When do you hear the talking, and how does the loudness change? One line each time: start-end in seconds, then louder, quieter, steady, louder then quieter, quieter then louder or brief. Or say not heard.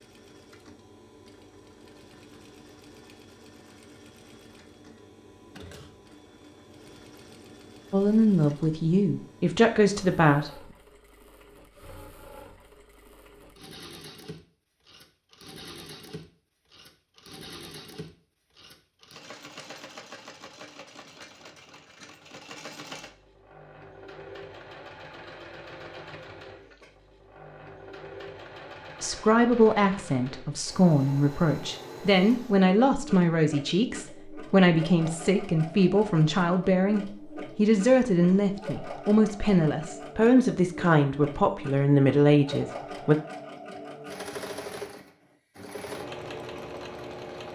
7.9-10.6 brief
29.0-43.1 steady.